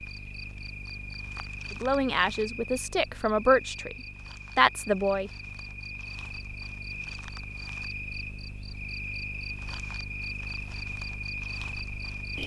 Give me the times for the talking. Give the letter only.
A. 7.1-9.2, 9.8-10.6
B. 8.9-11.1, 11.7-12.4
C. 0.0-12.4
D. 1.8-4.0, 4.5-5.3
D.